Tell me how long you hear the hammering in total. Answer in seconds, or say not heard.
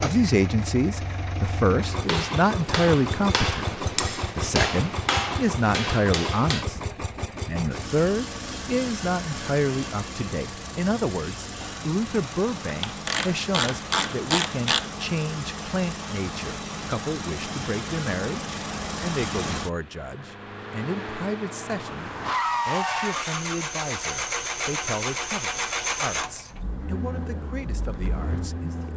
5 s.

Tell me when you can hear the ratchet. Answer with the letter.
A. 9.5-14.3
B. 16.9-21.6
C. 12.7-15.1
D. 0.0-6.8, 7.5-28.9
C.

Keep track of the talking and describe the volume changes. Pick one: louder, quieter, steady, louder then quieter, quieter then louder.
quieter.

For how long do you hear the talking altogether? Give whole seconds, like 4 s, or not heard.
28 s.